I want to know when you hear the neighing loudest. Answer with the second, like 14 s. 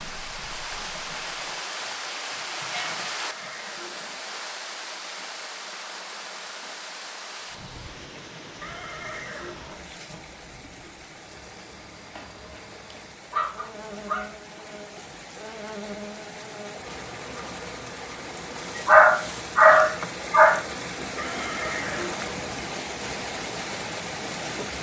22 s.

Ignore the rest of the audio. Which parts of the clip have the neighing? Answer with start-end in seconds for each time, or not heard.
3.2-4.2, 8.6-9.8, 21.1-22.4.